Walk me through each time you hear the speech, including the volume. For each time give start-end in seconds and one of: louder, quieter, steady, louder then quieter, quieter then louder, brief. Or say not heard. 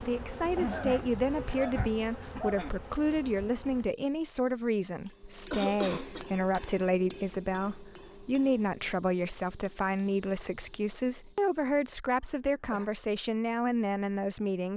0.0-14.7 steady.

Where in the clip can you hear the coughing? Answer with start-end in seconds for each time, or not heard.
0.6-2.8, 5.0-6.2, 12.2-12.9.